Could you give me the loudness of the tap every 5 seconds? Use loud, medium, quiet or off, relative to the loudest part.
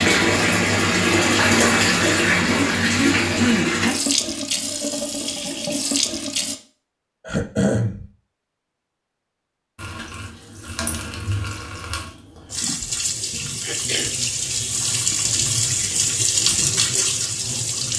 loud, medium, medium, loud.